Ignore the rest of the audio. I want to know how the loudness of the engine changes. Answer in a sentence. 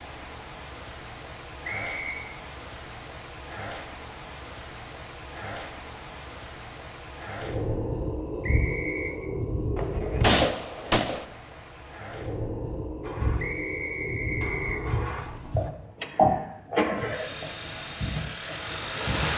The volume of the engine goes up, then down.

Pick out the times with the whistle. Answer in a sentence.
You can hear the whistle from 1.6 to 2.2 s, from 8.4 to 9.2 s and from 13.3 to 14.8 s.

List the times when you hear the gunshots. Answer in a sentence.
The gunshots can be heard from 9.8 to 11.2 s.